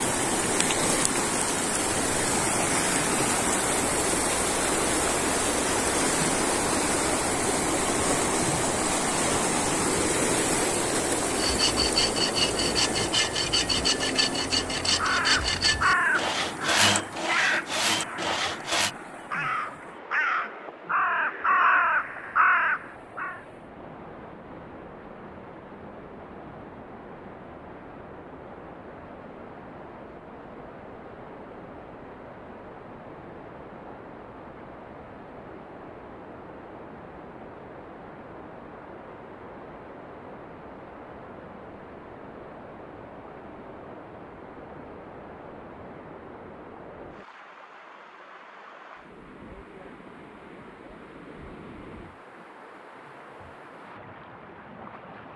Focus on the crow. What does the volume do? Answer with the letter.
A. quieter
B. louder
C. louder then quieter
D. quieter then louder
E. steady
D.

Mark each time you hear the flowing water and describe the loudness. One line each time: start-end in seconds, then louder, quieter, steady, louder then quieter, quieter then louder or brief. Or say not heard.
0.0-55.3 quieter.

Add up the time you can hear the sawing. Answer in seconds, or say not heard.
8 s.